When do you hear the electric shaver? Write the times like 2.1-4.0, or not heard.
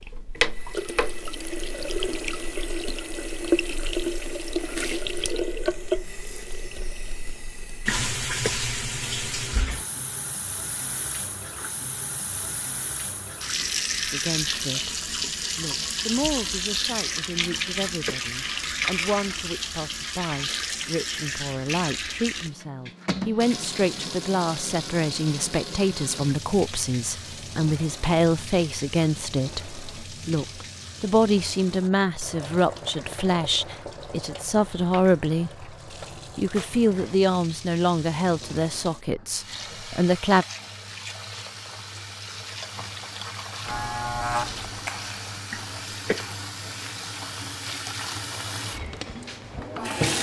43.6-45.4.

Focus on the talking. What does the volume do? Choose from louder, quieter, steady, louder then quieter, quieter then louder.
louder.